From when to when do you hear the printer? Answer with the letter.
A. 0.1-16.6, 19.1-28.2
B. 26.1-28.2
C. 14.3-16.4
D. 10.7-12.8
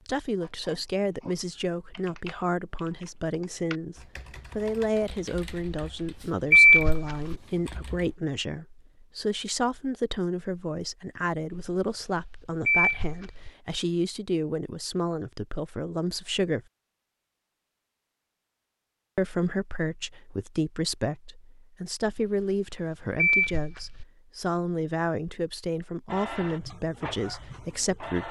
B.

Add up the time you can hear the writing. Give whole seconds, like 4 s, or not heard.
not heard.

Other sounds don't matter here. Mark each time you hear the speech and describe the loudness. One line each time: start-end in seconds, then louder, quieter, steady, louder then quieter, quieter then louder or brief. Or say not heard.
0.1-16.6 steady
19.1-28.2 steady.